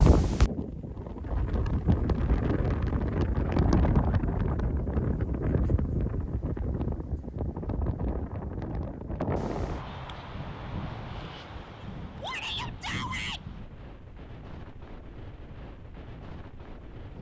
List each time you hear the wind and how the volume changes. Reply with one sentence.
The wind can be heard from 0.0 to 17.1 s, getting quieter.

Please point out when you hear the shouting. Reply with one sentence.
The shouting can be heard from 12.2 to 13.4 s.